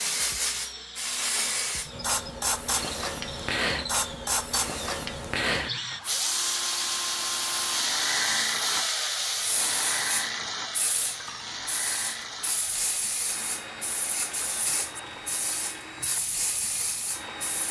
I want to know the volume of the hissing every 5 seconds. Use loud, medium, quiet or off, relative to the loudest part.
loud, loud, medium, medium.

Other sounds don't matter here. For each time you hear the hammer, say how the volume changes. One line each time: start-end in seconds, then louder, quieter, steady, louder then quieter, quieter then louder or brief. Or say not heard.
not heard.